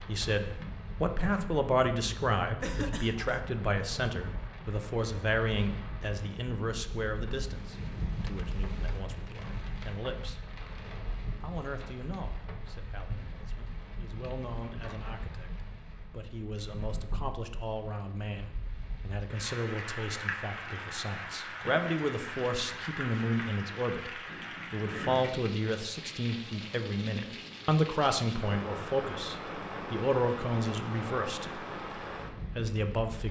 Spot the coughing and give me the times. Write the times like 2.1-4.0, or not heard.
2.6-3.4.